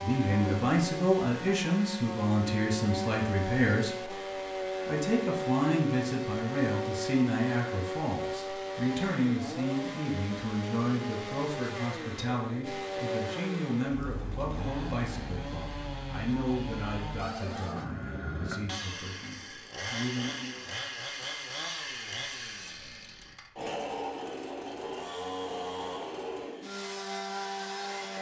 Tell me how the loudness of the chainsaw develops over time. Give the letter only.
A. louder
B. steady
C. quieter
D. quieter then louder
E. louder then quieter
B.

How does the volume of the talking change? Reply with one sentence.
The loudness of the talking goes down.